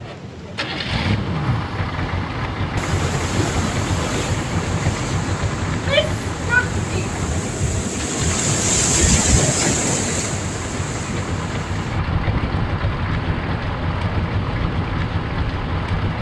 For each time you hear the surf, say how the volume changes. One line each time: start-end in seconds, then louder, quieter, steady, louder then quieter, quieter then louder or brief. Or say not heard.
0.0-16.1 louder then quieter.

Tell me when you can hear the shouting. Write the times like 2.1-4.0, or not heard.
5.7-7.1.